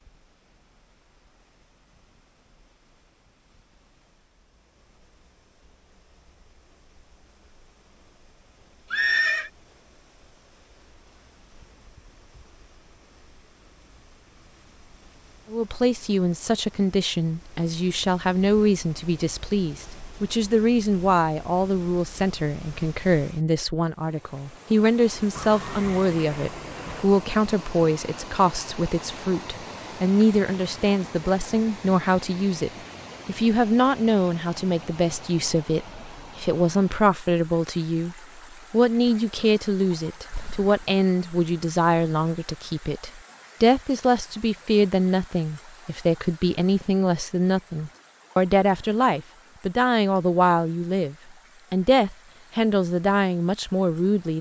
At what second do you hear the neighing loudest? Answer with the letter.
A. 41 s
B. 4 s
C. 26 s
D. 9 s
D.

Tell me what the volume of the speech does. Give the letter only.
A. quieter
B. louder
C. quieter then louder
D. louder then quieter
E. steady
E.